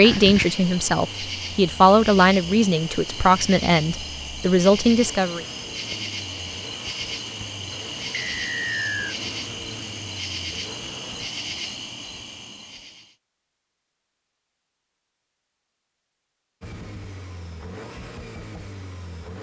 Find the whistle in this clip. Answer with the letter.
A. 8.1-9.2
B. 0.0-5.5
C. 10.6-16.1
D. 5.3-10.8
A.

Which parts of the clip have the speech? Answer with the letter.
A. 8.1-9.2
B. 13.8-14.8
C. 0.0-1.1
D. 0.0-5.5
D.